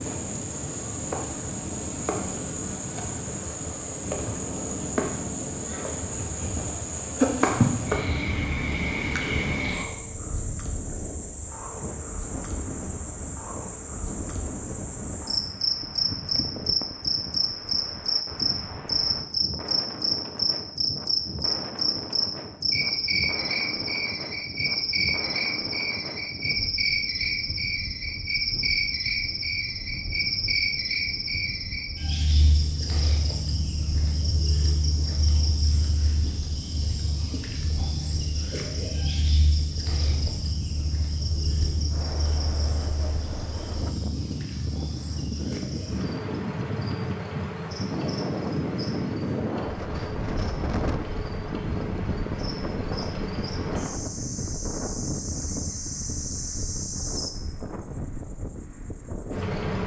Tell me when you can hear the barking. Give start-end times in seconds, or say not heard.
not heard.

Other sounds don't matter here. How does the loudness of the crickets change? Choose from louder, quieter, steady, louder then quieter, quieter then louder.
quieter.